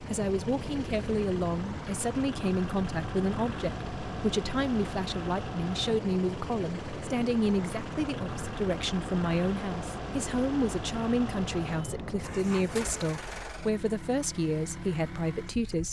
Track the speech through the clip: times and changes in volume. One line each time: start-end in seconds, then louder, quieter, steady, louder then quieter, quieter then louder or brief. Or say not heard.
0.0-15.8 steady.